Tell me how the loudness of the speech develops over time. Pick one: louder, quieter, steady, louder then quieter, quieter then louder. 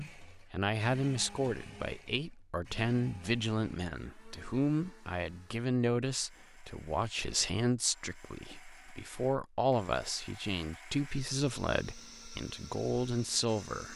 steady.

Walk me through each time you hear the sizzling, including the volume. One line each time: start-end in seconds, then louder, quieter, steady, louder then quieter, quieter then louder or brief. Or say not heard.
not heard.